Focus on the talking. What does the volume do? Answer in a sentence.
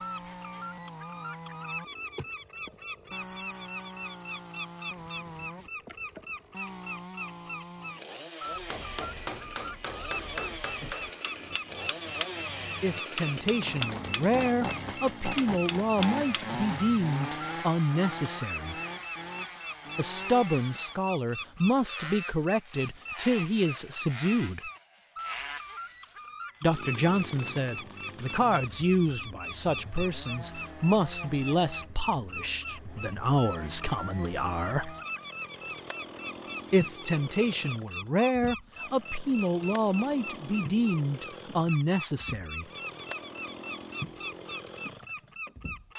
The volume of the talking stays about the same.